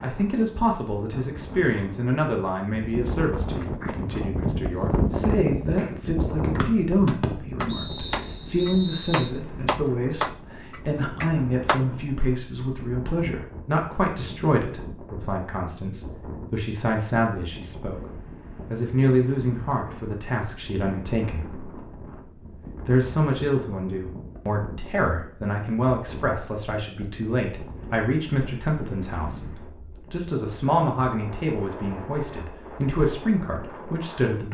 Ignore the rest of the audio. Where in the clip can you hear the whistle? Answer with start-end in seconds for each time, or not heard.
6.6-9.3.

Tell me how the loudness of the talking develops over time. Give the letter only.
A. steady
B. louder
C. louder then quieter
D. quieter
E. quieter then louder
A.